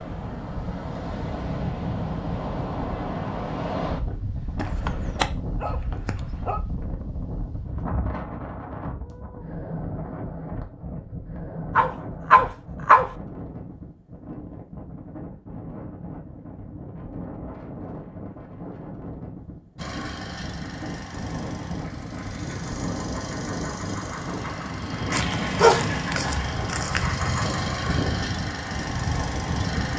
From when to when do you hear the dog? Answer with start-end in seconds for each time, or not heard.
4.5-6.6, 11.8-13.1, 25.1-27.2.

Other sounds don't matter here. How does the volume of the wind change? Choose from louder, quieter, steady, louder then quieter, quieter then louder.
quieter then louder.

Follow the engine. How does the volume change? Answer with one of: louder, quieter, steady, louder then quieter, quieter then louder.
louder.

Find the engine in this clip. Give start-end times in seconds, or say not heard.
19.8-29.9.